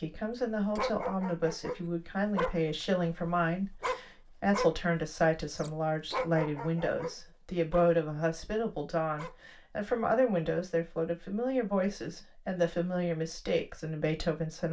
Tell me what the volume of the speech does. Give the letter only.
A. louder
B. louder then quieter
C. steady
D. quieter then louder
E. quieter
C.